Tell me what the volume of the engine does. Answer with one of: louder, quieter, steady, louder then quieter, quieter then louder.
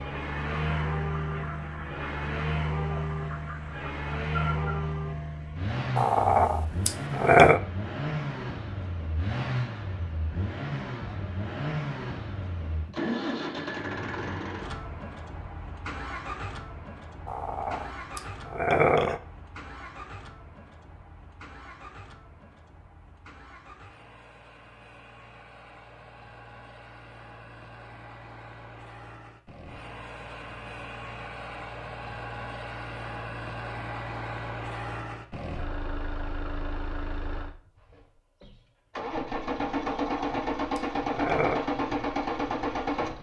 quieter then louder.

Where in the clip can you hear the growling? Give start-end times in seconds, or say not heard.
6.0-7.6, 17.2-19.2, 39.9-41.6.